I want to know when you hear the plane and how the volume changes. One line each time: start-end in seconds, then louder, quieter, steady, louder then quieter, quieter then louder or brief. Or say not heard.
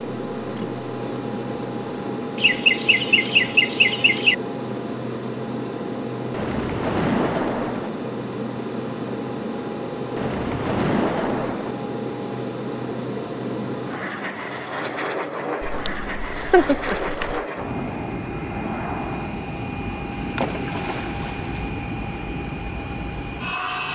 0.0-23.8 steady.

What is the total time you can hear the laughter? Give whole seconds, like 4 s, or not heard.
3 s.